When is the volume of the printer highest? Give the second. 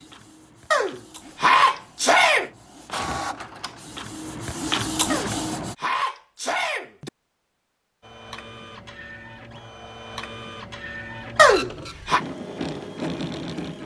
5 s.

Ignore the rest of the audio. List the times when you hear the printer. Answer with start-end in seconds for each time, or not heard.
0.0-5.8, 8.0-13.8.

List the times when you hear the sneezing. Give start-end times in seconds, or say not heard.
0.7-2.5, 5.1-7.1, 11.3-12.2.